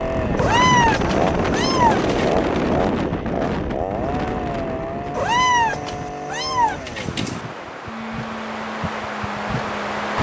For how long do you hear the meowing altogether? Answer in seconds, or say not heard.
4 s.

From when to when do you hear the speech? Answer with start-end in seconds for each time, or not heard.
not heard.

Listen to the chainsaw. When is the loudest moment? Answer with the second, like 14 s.
2 s.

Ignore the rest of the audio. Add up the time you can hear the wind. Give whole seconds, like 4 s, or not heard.
10 s.